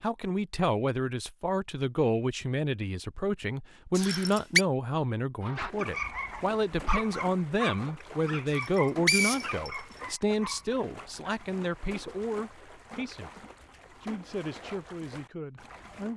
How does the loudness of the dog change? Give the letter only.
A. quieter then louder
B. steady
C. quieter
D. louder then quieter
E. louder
C.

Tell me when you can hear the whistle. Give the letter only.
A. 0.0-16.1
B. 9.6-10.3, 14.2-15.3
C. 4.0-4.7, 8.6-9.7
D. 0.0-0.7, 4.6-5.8
C.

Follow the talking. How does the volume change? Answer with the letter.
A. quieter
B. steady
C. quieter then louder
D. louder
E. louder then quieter
A.